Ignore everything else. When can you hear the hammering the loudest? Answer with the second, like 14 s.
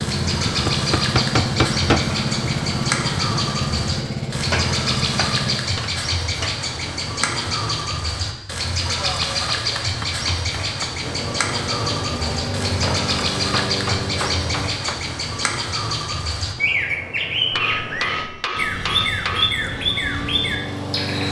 2 s.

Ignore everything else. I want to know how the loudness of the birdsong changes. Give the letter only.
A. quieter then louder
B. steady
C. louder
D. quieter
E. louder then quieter
B.